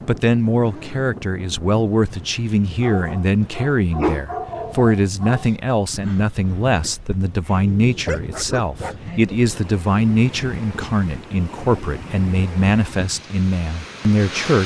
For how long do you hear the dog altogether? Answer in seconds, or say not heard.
7 s.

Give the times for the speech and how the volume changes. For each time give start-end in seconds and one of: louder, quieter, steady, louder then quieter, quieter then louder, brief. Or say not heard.
0.1-14.6 steady.